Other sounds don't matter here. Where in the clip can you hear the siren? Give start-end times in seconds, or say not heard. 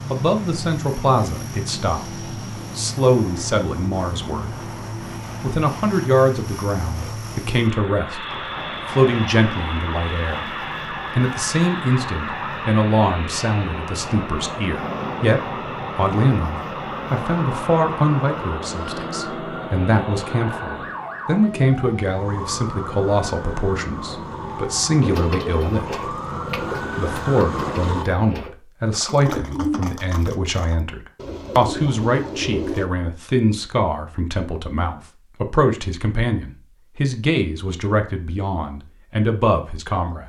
8.2-28.1.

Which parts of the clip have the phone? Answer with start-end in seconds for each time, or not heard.
not heard.